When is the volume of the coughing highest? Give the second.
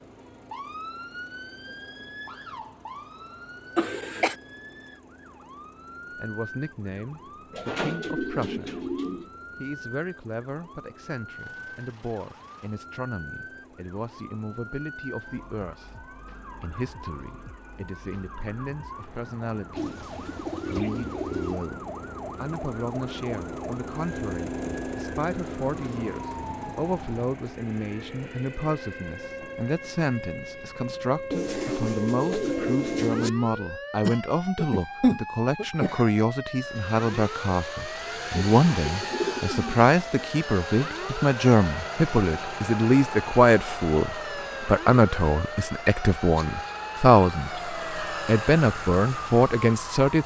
35 s.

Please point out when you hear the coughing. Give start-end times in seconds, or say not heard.
3.8-4.3, 34.0-36.0.